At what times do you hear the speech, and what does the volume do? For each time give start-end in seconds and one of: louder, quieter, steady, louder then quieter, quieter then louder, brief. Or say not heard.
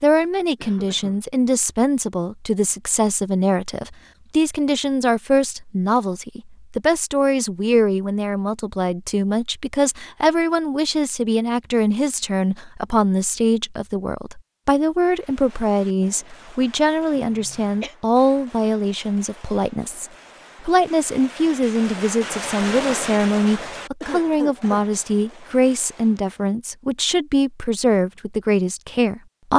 0.0-29.5 steady.